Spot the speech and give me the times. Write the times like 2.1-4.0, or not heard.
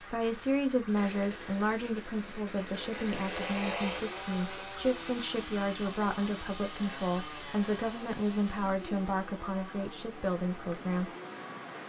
0.1-11.1.